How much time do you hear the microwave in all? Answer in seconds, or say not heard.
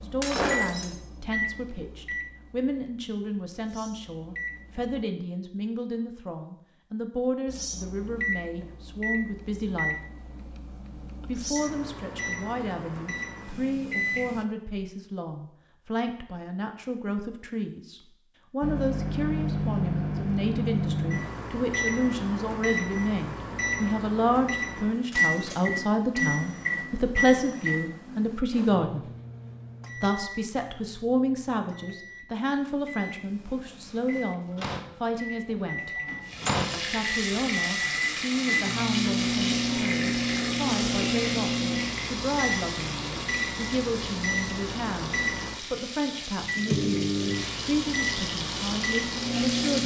43 s.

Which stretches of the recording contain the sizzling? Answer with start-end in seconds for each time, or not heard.
36.2-49.8.